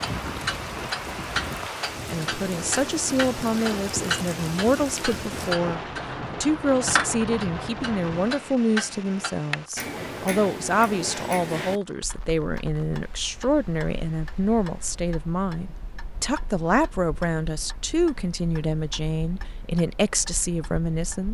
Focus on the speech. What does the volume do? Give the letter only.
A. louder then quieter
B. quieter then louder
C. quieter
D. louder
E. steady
E.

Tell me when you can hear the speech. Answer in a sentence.
You can hear the speech from 2.1 to 5.8 s and from 6.4 to 21.3 s.